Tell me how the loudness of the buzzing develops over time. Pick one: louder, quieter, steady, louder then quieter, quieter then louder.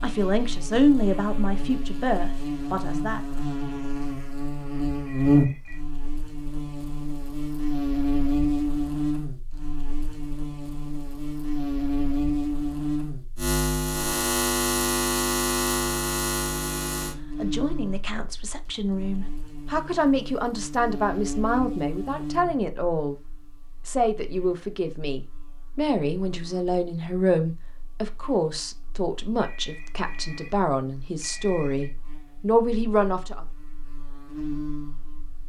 quieter.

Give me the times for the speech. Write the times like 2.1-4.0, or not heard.
0.0-3.2, 17.4-23.1, 23.9-33.5.